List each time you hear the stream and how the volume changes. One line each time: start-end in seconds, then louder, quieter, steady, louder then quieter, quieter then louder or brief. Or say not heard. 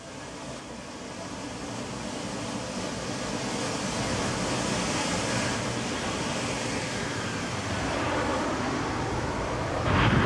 0.0-10.2 louder then quieter.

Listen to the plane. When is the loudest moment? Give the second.
10 s.